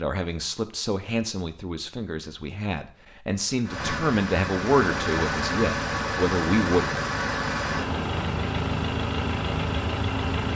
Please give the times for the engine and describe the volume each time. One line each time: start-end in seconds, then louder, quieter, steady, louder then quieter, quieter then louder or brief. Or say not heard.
3.6-10.5 steady.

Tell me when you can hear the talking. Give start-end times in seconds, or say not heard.
0.0-6.8.